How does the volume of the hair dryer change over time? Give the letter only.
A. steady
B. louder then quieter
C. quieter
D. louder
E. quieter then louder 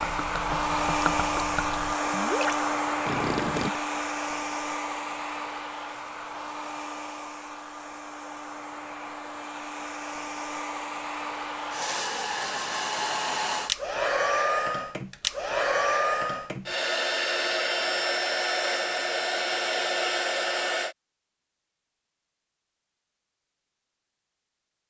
E.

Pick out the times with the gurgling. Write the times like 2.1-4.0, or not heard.
0.0-3.8.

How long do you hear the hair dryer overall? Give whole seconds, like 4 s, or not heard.
21 s.